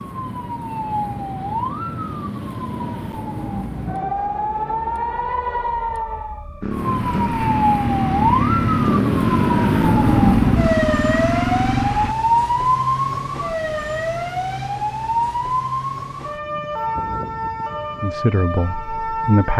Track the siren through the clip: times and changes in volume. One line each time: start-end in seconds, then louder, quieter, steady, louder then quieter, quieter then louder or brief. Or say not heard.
0.0-19.5 louder then quieter.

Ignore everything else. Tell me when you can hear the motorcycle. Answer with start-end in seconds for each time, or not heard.
6.6-12.2.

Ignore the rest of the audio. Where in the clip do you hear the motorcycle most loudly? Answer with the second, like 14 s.
10 s.